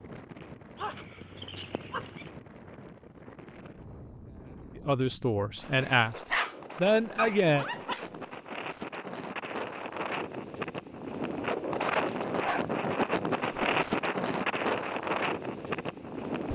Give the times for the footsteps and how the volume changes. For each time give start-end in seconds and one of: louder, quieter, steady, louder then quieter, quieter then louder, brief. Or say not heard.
not heard.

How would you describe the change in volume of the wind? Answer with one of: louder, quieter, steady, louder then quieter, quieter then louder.
louder.